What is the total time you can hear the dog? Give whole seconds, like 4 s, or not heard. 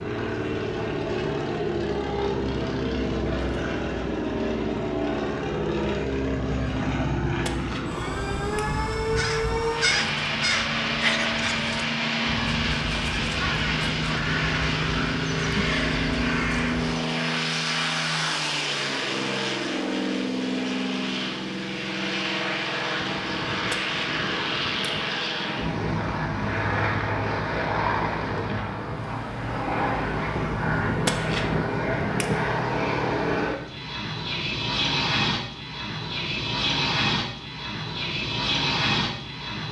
not heard.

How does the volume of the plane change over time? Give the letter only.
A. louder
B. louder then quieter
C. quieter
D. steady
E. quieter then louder
D.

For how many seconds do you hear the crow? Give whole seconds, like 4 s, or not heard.
8 s.